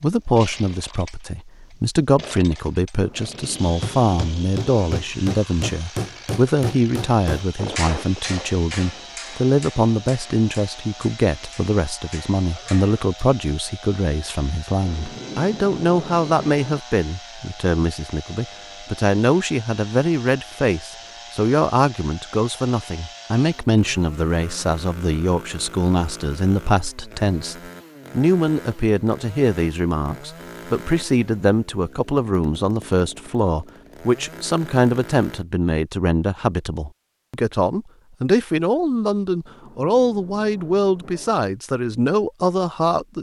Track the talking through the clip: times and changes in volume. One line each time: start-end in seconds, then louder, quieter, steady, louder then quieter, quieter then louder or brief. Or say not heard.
0.0-43.1 steady.